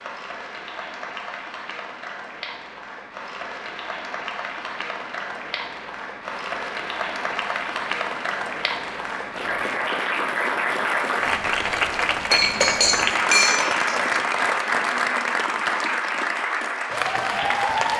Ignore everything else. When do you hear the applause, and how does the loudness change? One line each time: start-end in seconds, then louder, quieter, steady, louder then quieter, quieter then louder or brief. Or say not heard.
0.0-17.9 louder.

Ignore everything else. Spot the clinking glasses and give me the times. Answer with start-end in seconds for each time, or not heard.
12.3-14.2.